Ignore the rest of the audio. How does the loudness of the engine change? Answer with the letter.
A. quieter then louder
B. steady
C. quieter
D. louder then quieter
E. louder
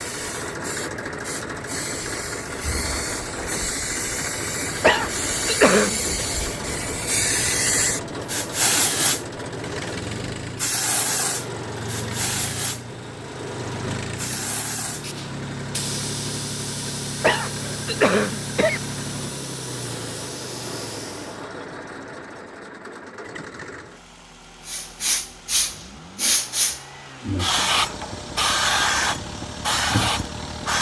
C.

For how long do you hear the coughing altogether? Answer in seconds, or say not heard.
3 s.